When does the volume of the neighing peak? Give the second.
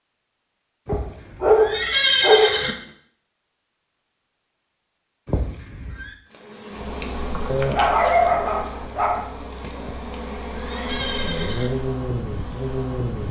2 s.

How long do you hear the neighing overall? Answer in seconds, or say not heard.
5 s.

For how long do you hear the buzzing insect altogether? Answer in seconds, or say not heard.
7 s.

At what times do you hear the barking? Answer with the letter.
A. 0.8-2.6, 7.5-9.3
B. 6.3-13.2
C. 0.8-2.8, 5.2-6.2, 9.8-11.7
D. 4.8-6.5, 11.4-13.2
A.